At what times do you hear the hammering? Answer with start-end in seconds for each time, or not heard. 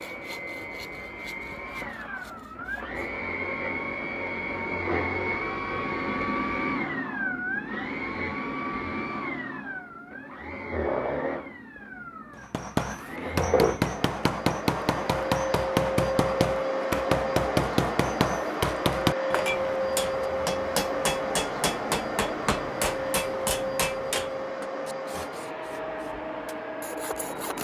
12.3-24.6.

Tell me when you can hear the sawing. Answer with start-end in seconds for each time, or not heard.
0.0-3.0, 24.9-27.5.